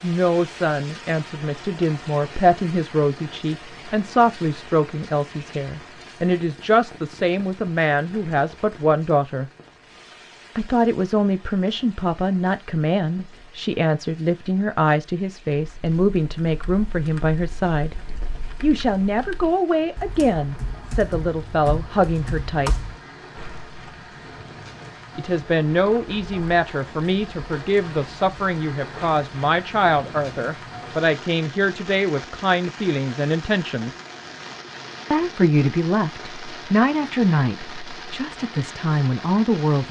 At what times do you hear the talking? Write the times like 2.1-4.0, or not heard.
0.0-9.4, 10.6-17.9, 18.6-22.8, 25.1-33.9, 35.1-39.8.